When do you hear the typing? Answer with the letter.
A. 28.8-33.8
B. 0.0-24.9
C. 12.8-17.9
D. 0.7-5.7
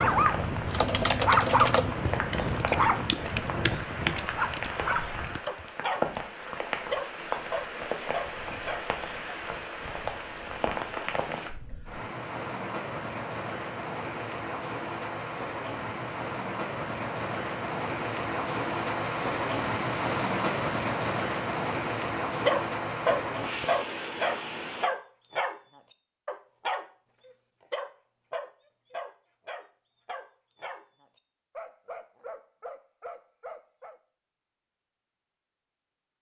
D.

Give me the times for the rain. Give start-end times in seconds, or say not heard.
0.0-24.9.